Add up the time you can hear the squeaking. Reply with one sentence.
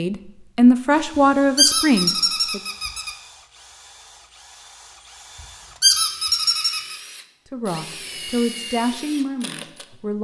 The squeaking can be heard for 3 seconds in total.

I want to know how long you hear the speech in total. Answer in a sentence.
The speech can be heard for 5 seconds in total.